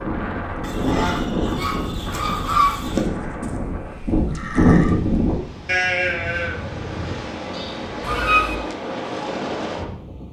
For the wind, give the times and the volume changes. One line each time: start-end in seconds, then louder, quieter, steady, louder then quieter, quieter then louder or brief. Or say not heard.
0.0-10.2 quieter then louder.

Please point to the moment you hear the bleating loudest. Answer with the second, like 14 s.
5 s.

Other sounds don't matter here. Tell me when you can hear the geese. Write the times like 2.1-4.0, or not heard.
0.6-3.0, 8.0-8.6.